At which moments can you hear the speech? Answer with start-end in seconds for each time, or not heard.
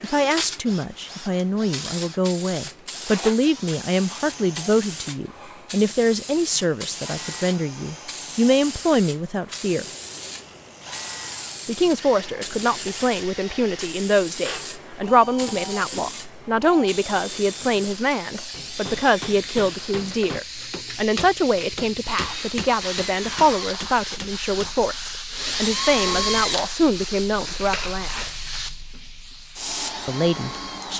0.0-9.8, 11.7-28.3, 30.1-30.9.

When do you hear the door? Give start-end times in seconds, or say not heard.
not heard.